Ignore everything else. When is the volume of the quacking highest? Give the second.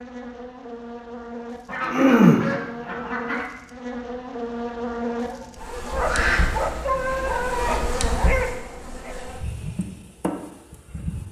2 s.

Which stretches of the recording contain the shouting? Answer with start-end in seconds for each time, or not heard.
not heard.